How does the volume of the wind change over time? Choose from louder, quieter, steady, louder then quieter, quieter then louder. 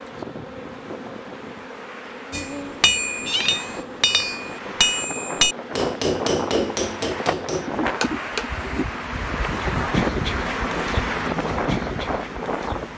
louder.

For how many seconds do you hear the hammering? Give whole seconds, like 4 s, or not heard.
6 s.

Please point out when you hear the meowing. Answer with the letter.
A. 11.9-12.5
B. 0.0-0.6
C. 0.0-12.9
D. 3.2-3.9
D.